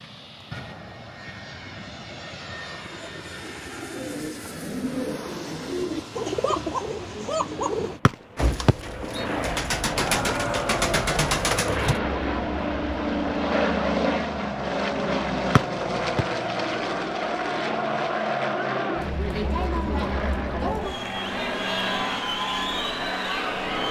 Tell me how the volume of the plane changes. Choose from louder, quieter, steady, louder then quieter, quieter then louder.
louder then quieter.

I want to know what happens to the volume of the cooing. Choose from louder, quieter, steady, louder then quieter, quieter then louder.
louder.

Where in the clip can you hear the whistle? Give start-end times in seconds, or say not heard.
8.1-9.2, 15.6-16.2.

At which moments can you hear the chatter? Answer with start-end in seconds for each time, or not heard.
9.9-23.8.